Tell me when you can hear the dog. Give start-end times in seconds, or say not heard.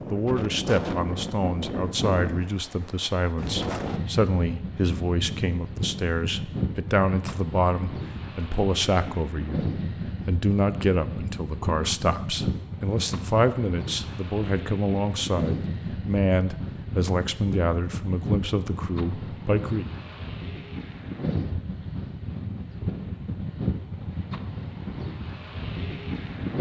not heard.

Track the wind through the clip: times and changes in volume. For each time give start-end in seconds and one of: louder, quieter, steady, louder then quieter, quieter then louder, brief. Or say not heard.
0.0-26.5 steady.